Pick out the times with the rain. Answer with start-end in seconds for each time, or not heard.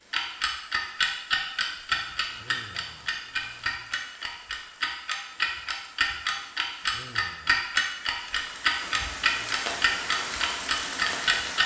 0.0-11.6.